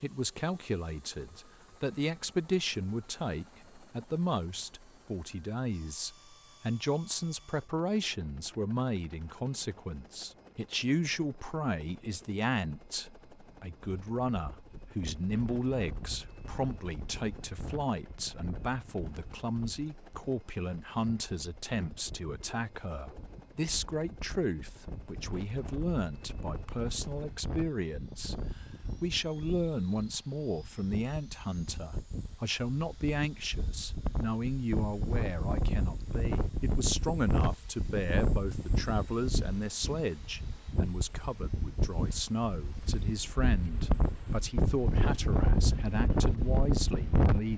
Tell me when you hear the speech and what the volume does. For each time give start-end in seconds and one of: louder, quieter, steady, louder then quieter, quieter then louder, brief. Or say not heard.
0.0-47.5 steady.